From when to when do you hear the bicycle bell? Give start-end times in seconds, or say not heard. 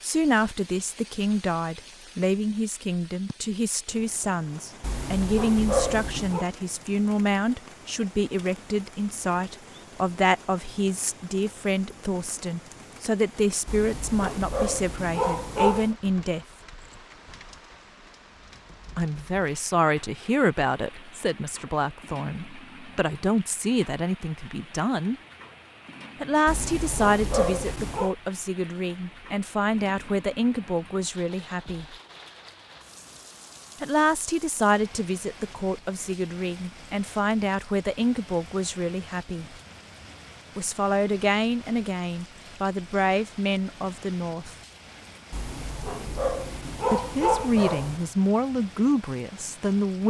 not heard.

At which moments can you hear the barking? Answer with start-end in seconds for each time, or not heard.
4.8-6.5, 13.7-15.9, 26.4-28.1, 45.3-48.0.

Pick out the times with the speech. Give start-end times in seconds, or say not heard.
0.0-16.4, 18.9-25.1, 26.2-31.9, 33.8-39.5, 40.5-44.5, 46.9-50.0.